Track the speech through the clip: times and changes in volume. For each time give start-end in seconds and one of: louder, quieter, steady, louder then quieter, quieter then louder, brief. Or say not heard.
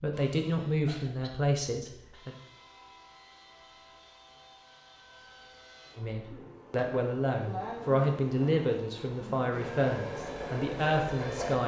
0.0-2.4 brief
6.0-11.6 steady.